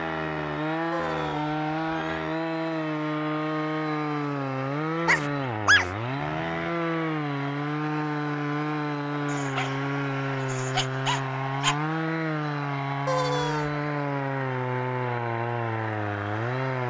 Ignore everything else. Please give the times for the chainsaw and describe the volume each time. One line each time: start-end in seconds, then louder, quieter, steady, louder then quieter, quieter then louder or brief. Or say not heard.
0.0-16.8 steady.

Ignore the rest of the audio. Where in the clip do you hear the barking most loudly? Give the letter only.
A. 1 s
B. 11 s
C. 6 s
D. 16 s
C.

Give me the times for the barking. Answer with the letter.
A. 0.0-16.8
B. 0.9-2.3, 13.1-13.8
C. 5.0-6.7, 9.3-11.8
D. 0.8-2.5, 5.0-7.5
C.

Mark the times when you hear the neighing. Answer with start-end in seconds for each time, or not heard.
0.9-2.3, 13.1-13.8.